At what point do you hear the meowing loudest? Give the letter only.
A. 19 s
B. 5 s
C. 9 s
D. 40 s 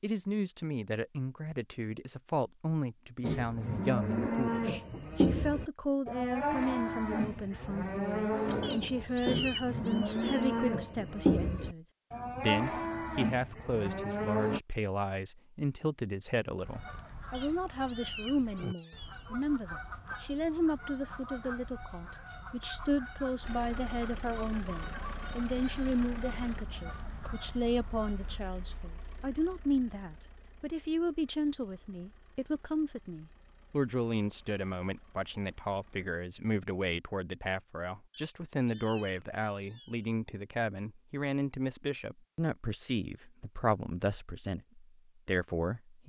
C.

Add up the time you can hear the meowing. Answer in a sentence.
You can hear the meowing for 6 seconds altogether.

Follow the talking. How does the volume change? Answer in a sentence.
The volume of the talking stays about the same.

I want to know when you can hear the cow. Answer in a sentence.
You can hear the cow from 3.2 to 14.6 s.